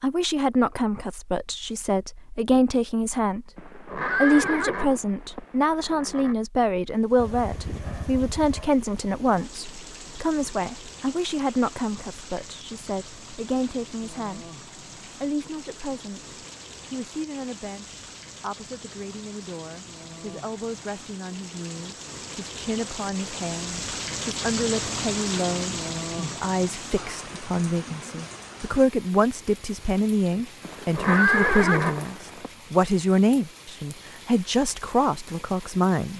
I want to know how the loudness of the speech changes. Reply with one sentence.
The volume of the speech goes down, then up.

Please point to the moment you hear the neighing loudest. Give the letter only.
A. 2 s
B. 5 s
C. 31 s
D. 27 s
C.